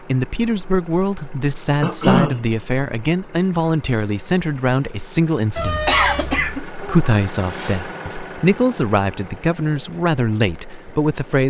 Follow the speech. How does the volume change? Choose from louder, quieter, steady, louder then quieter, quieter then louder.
steady.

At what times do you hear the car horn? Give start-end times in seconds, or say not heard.
5.5-6.6.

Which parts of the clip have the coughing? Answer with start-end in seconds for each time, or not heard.
1.8-2.5, 5.8-7.8.